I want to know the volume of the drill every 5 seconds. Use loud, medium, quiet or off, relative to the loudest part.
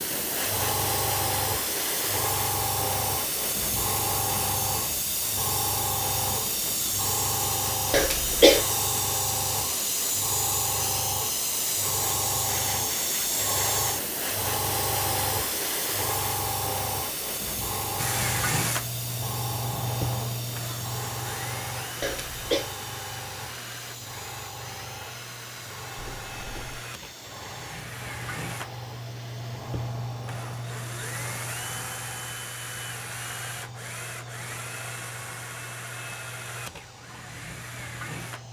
off, off, off, loud, medium, medium, medium, medium.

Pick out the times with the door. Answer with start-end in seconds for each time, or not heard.
25.9-26.9.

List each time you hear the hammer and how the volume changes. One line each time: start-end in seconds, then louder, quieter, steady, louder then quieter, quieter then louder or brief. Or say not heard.
not heard.